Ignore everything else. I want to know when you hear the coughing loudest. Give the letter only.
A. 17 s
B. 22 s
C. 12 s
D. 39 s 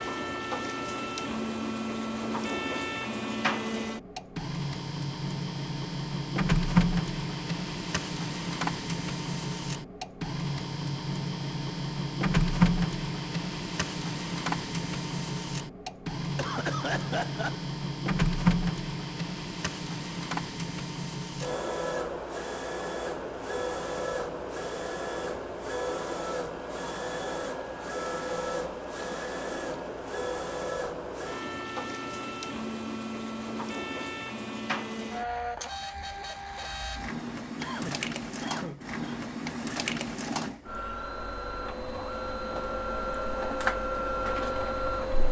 A.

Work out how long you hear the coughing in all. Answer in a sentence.
The coughing can be heard for 3 seconds in total.